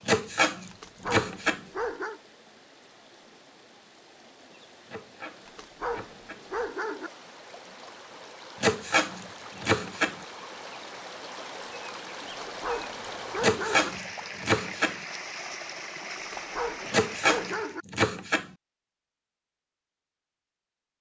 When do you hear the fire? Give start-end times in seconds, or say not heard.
not heard.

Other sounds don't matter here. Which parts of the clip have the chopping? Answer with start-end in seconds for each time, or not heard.
0.1-1.6, 4.8-6.5, 8.6-10.2, 13.4-14.9, 16.9-18.5.